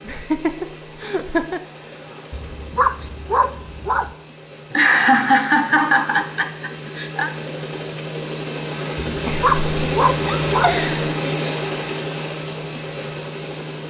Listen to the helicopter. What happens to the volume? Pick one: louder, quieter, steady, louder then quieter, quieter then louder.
louder.